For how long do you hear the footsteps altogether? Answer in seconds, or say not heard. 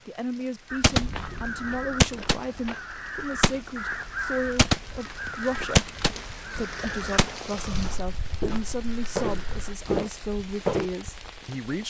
10 s.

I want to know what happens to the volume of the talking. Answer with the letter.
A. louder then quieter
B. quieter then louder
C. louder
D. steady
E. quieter
D.